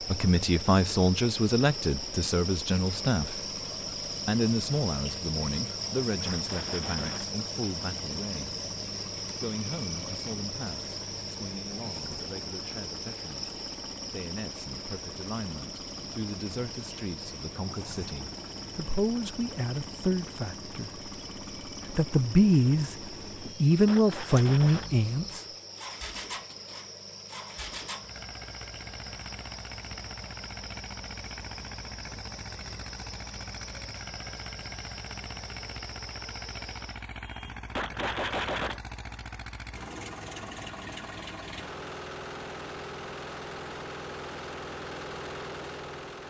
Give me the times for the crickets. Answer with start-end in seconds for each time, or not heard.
0.0-37.0.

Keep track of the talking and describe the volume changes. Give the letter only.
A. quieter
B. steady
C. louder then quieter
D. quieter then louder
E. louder
D.